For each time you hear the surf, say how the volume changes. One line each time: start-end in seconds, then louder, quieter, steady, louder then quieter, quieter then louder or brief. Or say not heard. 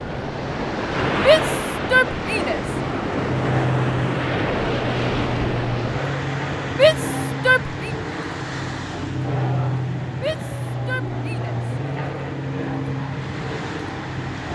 0.0-14.4 quieter.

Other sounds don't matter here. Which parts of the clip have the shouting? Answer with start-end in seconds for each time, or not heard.
1.1-2.6, 6.7-7.9, 10.2-11.6.